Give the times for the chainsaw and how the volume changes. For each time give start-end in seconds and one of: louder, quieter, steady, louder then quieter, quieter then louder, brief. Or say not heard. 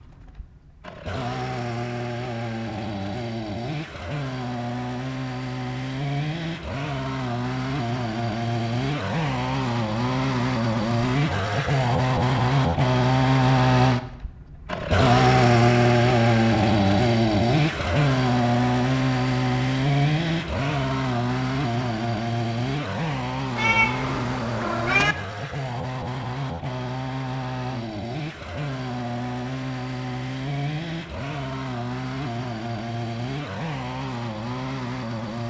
0.0-35.4 louder then quieter.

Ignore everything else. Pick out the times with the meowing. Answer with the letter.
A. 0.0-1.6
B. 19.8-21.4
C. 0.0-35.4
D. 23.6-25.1
D.